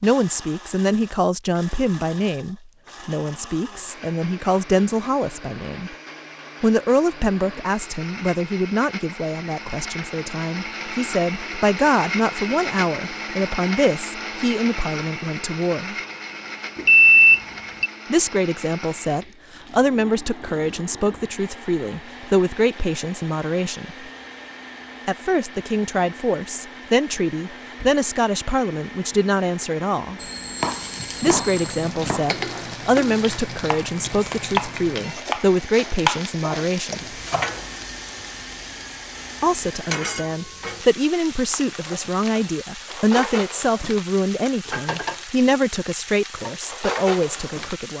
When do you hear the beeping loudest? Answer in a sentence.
The loudest moment of the beeping is at 17 seconds.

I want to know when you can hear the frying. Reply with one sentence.
The frying can be heard from 30.6 to 47.9 s.